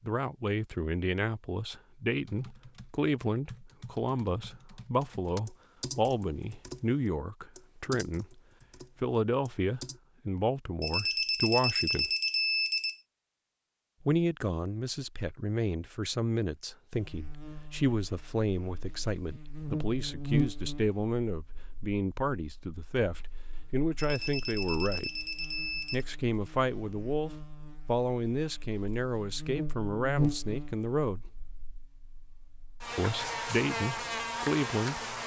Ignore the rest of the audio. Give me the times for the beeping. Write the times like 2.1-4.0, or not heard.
10.8-13.0, 23.9-26.1.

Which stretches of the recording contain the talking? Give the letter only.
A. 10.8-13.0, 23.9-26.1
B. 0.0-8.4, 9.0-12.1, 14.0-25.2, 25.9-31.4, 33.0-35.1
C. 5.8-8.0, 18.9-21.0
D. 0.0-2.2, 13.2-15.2
B.